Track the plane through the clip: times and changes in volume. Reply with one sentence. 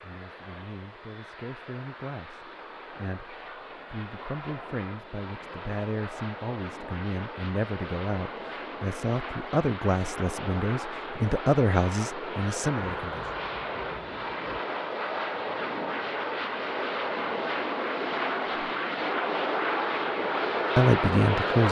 You can hear the plane from 0.0 to 21.6 s, getting louder.